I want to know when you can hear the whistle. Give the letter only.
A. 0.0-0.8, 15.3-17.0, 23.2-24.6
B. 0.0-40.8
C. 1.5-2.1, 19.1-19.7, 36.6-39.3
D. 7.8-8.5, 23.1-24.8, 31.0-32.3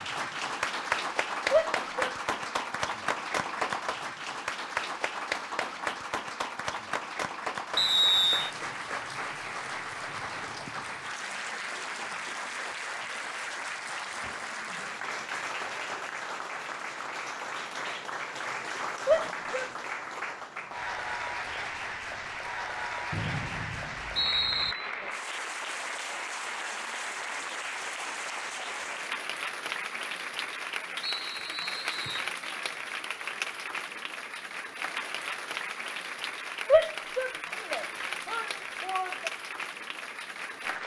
D.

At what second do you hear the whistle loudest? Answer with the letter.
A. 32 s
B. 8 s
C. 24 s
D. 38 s
B.